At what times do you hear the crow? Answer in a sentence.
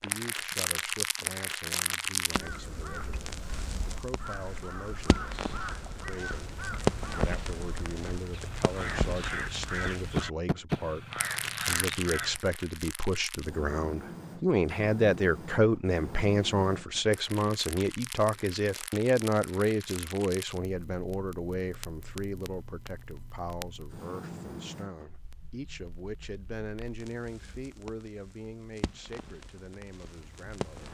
The crow can be heard from 2.3 to 12.3 s.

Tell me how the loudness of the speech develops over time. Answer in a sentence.
The loudness of the speech goes up, then down.